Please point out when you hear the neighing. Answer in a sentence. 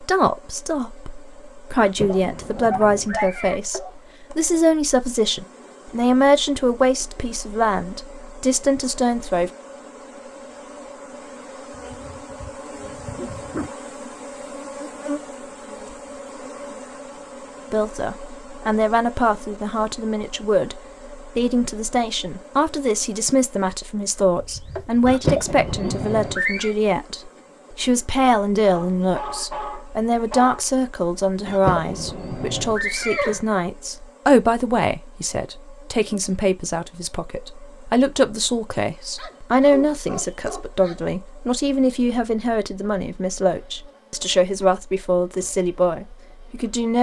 You can hear the neighing from 1.8 to 3.6 s, from 25.1 to 26.8 s and from 31.4 to 33.4 s.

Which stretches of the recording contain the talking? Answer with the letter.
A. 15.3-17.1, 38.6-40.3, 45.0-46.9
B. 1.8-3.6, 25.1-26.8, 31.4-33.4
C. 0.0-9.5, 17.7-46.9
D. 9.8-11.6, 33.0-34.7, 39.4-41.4
C.